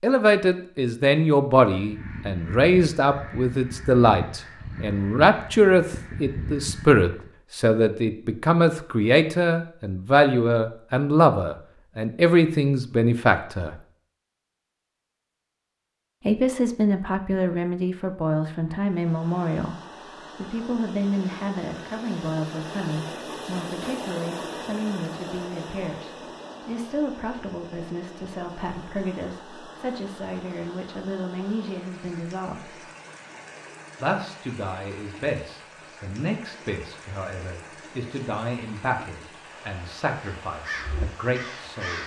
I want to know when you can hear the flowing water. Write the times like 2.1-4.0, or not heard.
18.9-42.0.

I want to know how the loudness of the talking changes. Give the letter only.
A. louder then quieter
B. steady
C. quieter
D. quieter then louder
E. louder
C.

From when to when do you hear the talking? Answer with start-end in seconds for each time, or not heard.
0.0-13.8, 16.2-19.8, 20.4-32.8, 34.0-42.0.